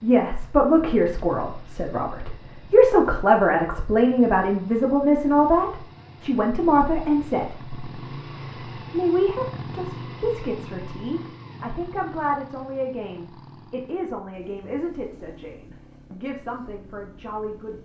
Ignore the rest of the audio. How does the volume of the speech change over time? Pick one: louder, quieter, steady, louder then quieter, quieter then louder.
quieter.